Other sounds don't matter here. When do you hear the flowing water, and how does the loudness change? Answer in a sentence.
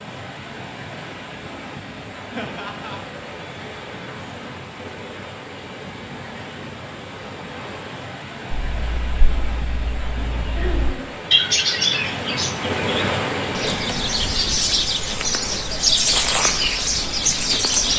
You can hear the flowing water from 0.0 to 17.9 s, getting louder then quieter.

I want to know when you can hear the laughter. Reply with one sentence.
The laughter can be heard from 2.4 to 3.0 s and from 10.5 to 11.1 s.